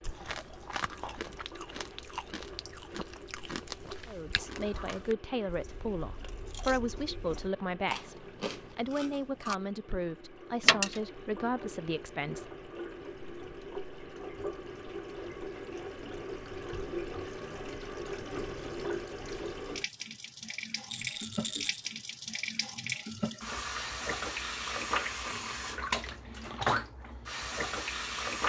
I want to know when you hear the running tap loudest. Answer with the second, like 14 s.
26 s.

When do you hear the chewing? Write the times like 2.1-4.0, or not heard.
0.0-9.6.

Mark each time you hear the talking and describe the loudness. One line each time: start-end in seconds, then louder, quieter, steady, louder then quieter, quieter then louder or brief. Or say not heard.
4.0-12.4 steady.